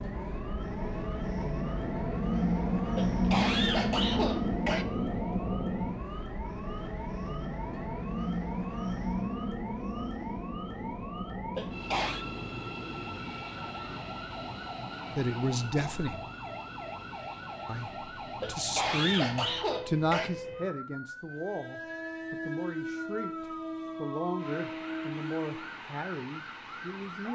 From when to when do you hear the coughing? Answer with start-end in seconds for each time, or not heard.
3.0-4.8, 11.6-12.2, 18.4-20.3.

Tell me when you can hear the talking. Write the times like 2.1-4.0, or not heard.
15.2-16.2, 17.6-27.3.